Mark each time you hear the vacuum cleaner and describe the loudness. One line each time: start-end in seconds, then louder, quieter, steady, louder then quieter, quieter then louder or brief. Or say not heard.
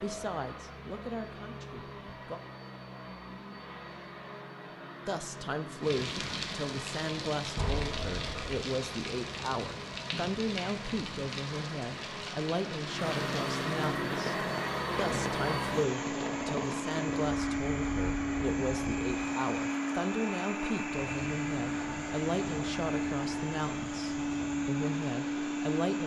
0.0-26.0 louder.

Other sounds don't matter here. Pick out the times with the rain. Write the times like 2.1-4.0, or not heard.
5.8-26.0.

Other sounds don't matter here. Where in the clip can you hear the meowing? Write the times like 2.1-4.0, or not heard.
7.5-8.4.